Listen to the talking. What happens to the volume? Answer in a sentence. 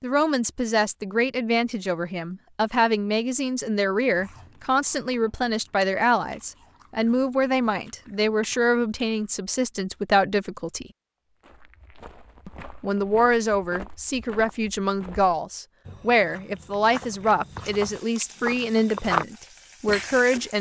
The volume of the talking stays about the same.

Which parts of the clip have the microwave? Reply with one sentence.
You can't hear the microwave here.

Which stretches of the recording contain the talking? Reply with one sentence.
You can hear the talking from 0.0 to 10.9 s and from 12.4 to 20.5 s.